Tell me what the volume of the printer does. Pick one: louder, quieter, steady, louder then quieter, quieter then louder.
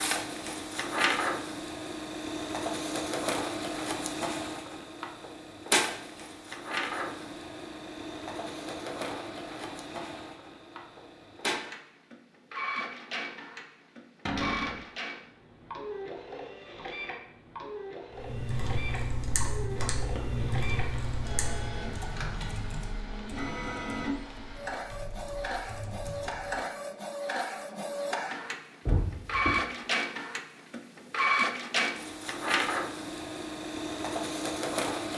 quieter then louder.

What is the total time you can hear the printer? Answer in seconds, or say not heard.
35 s.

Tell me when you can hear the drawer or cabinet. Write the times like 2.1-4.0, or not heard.
14.2-14.8, 28.9-29.6.